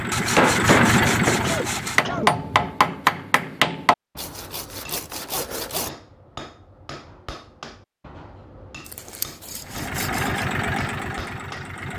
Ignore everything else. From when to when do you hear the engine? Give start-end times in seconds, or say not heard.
0.0-2.1, 9.7-11.9.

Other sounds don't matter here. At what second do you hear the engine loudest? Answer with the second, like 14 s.
1 s.